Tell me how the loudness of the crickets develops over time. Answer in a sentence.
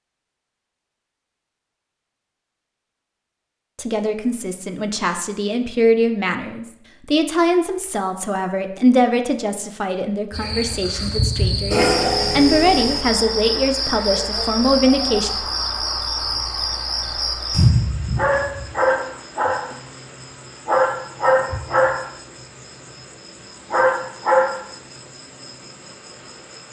The loudness of the crickets stays about the same.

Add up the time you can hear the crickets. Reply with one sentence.
You can hear the crickets for 16 seconds altogether.